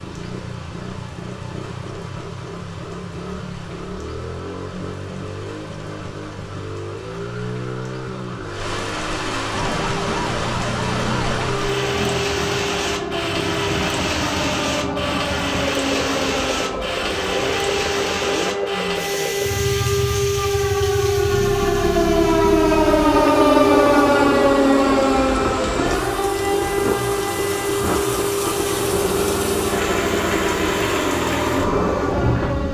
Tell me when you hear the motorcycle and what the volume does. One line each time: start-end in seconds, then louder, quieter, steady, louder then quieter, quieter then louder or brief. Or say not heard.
0.0-32.6 louder.